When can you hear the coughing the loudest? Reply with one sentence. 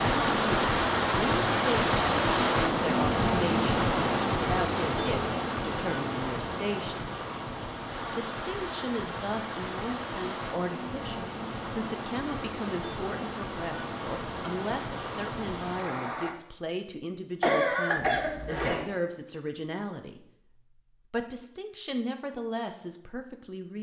The loudest moment of the coughing is at 18 seconds.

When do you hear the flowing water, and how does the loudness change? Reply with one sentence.
The flowing water can be heard from 0.0 to 16.4 s, getting quieter.